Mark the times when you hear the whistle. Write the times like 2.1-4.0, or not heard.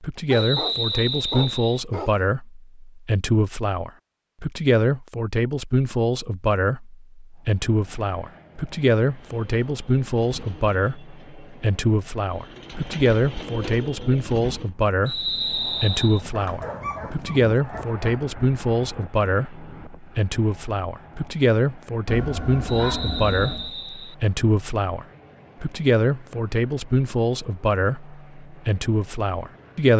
0.3-1.8, 15.1-16.2, 22.6-24.1.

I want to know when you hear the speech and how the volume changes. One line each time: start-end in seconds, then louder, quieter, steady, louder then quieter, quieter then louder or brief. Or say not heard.
0.0-29.9 steady.